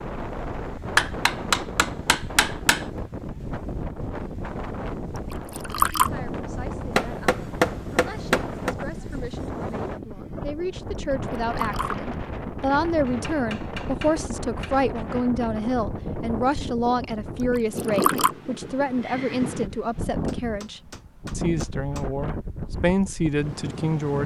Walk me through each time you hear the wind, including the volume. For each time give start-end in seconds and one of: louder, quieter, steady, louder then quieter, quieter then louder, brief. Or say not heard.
0.0-24.2 steady.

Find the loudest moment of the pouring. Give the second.
6 s.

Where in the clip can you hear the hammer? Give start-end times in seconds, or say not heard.
0.9-2.9, 7.0-8.8, 13.1-14.8, 20.2-22.1.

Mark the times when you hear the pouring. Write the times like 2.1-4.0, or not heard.
5.3-6.1, 11.1-12.0, 17.6-18.3.